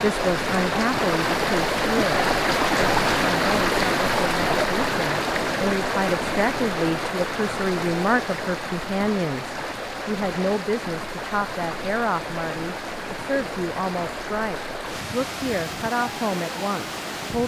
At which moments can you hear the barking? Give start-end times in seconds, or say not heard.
not heard.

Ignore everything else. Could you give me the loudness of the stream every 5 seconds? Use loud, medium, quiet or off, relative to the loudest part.
loud, medium, medium, medium.